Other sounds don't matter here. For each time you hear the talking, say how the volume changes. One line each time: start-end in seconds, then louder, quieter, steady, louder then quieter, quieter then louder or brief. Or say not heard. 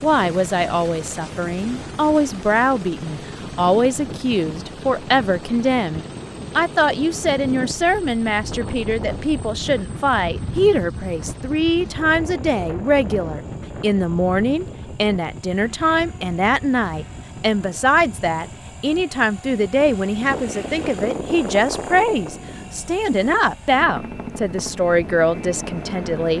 0.0-26.3 steady.